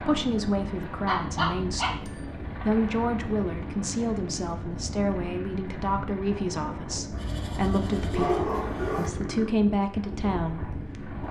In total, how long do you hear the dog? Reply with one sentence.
You can hear the dog for 3 seconds altogether.